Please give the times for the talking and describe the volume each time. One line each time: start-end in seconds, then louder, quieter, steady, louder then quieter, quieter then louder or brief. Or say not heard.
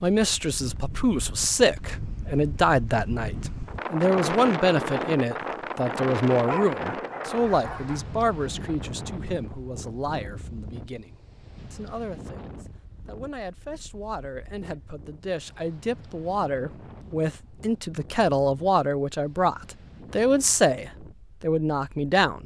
0.0-22.4 quieter then louder.